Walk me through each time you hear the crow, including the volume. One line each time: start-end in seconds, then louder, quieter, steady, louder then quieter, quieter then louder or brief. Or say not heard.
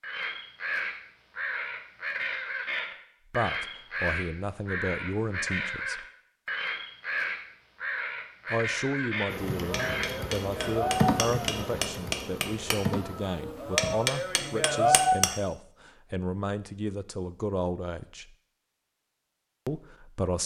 0.0-10.2 steady.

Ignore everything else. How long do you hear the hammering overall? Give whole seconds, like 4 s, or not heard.
6 s.